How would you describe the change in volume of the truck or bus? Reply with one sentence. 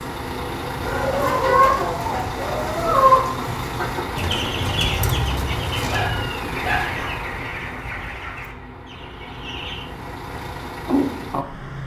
The loudness of the truck or bus goes down, then up.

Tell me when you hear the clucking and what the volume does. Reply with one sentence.
The clucking can be heard from 0.8 to 9.8 s, getting quieter.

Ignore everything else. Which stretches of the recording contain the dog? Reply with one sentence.
You can hear the dog from 5.8 to 7.0 s.